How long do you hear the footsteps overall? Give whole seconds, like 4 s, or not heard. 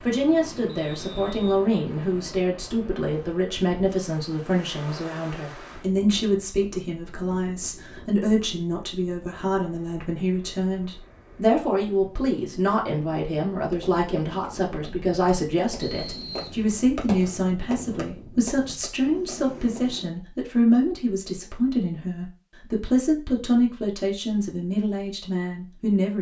not heard.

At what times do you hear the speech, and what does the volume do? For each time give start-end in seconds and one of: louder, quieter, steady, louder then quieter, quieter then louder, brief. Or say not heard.
0.1-26.1 steady.